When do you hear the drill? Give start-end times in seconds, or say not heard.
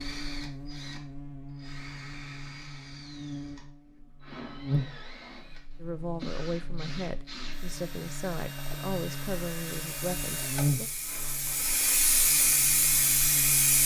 0.0-12.0.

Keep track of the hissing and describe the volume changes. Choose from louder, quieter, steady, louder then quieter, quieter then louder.
louder.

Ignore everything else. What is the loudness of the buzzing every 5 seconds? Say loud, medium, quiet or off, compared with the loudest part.
loud, medium, loud.